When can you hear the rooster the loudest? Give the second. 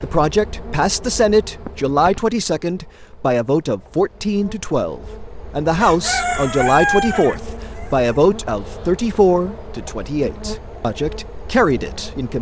7 s.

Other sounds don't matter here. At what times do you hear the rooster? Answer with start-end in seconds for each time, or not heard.
5.8-8.2.